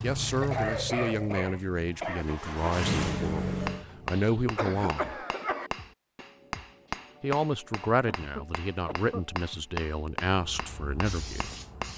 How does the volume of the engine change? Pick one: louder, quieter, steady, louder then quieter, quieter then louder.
quieter then louder.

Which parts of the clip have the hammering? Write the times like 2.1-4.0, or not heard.
3.5-11.9.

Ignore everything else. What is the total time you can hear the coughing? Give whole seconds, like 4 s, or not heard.
5 s.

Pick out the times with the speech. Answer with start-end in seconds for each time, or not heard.
0.0-5.2, 7.2-11.5.